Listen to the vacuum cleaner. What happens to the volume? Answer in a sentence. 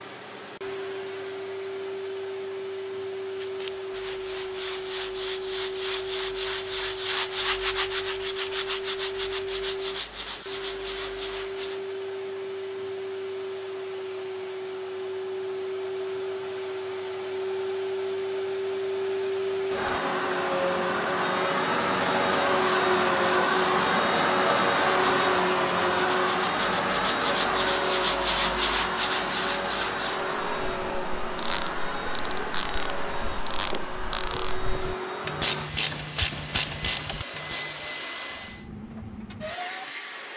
The volume of the vacuum cleaner goes up, then down.